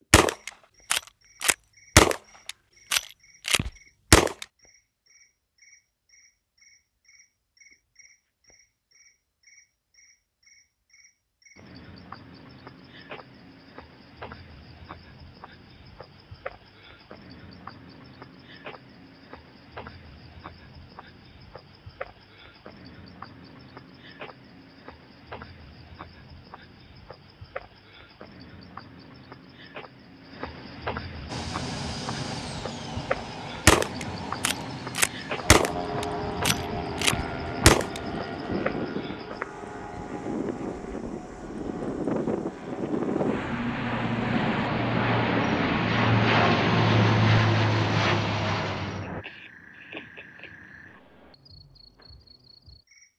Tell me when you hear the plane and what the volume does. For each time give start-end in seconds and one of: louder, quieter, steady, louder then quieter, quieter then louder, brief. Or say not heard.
31.2-49.2 louder.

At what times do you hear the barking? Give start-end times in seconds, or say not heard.
not heard.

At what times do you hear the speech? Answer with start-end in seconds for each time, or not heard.
not heard.